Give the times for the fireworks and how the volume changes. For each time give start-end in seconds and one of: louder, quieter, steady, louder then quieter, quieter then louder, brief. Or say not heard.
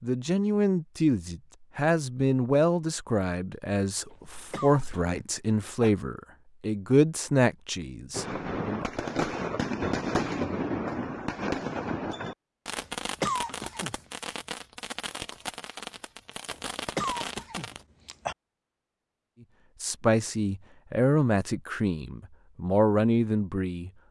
8.1-17.9 quieter.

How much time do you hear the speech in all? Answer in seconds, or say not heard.
13 s.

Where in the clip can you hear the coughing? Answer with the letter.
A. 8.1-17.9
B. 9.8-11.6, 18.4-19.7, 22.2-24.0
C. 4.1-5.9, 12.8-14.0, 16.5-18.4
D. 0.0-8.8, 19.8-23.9
C.